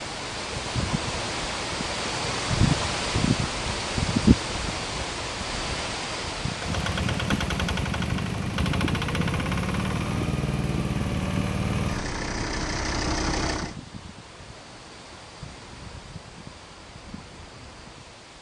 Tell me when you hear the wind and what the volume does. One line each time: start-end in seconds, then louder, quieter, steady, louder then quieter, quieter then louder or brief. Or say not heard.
0.0-18.3 quieter.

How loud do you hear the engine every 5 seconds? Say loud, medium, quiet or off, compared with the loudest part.
off, loud, loud, off.